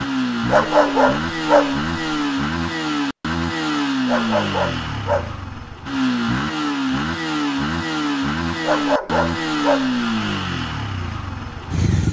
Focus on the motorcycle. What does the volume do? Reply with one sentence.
The volume of the motorcycle stays about the same.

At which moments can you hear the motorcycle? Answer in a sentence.
You can hear the motorcycle from 0.0 to 12.0 s.